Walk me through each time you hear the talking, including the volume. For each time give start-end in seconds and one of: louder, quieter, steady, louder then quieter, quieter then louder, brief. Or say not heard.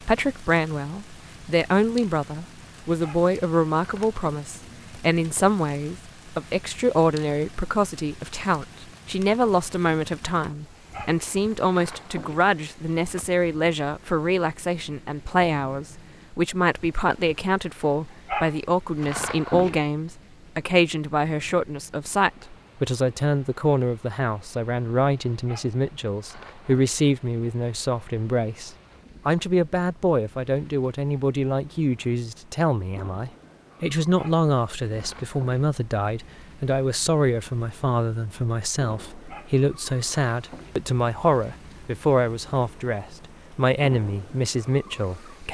0.1-45.5 steady.